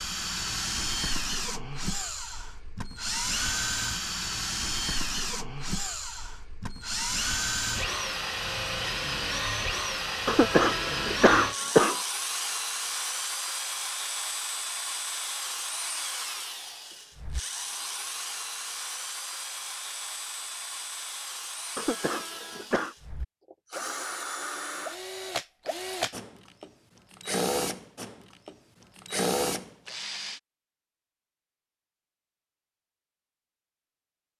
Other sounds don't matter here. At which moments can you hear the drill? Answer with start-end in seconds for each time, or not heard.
0.0-30.4.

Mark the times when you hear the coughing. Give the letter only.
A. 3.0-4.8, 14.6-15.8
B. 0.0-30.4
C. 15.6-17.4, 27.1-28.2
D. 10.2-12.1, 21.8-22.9
D.